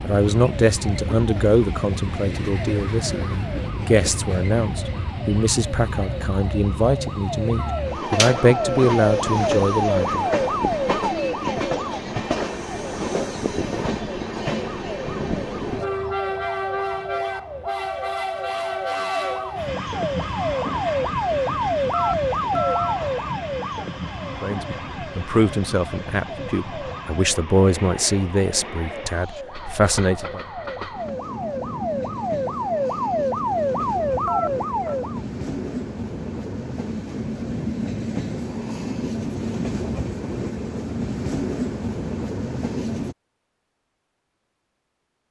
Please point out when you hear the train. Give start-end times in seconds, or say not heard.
0.0-43.1.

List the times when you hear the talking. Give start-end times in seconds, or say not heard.
0.0-10.2, 24.4-30.4.